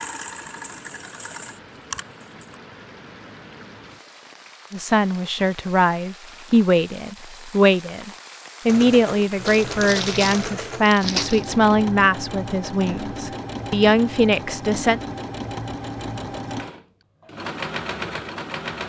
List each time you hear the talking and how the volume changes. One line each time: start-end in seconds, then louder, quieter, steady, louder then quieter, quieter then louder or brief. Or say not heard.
4.7-15.0 steady.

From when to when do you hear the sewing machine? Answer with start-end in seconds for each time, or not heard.
0.0-2.6, 8.7-18.8.